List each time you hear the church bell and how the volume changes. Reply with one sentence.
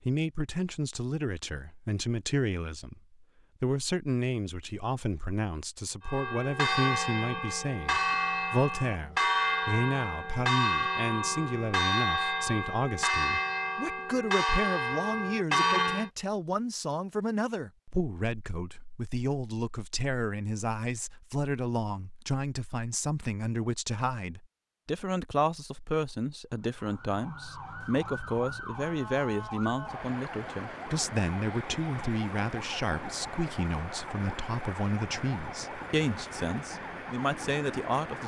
You can hear the church bell from 6.0 to 16.1 s, at a steady volume.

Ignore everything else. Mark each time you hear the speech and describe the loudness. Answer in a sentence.
The speech can be heard from 0.0 to 38.2 s, at a steady volume.